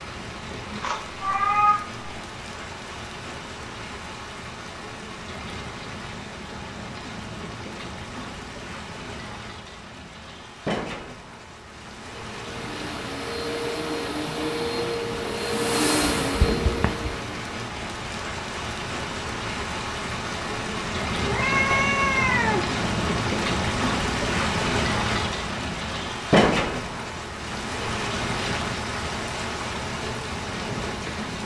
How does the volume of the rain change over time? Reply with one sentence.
The volume of the rain goes up.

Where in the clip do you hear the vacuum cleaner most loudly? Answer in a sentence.
The volume of the vacuum cleaner peaks at 16 seconds.